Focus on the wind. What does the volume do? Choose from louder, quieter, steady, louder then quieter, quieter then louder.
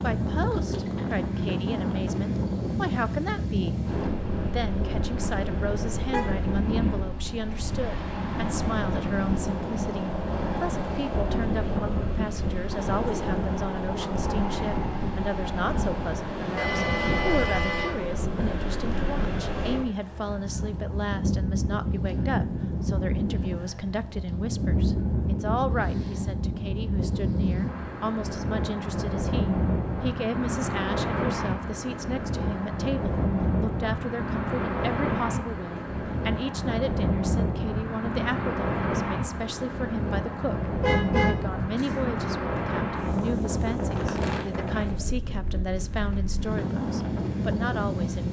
steady.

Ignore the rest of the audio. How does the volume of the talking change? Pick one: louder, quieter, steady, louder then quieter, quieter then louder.
steady.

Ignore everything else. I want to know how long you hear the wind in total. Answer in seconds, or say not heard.
48 s.